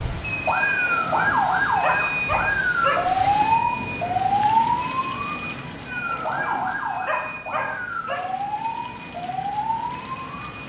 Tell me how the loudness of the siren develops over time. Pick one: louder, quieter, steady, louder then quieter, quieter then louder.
quieter.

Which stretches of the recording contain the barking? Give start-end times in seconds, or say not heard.
0.7-3.3, 5.8-8.2.